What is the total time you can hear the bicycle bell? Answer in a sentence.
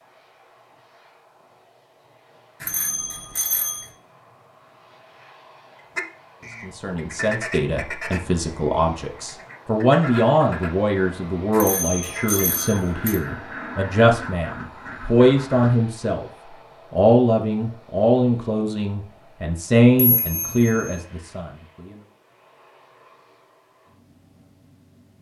You can hear the bicycle bell for 4 seconds altogether.